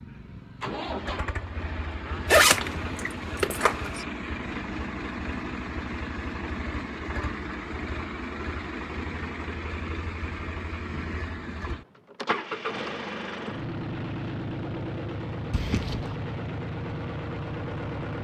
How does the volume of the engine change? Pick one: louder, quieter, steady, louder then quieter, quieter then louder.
steady.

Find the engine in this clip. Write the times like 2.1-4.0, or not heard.
0.0-18.1.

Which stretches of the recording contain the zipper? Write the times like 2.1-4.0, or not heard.
2.2-4.0, 15.5-16.2.